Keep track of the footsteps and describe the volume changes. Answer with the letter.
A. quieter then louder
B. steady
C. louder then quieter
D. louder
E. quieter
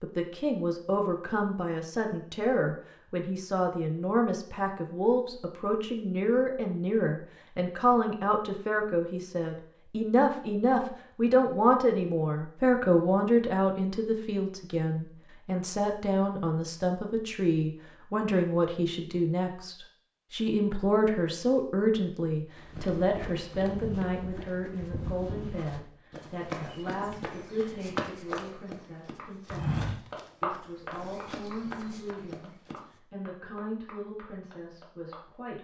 C.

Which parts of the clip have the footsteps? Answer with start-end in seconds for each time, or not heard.
22.6-32.8.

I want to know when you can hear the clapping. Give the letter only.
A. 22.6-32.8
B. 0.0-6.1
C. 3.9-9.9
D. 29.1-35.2
D.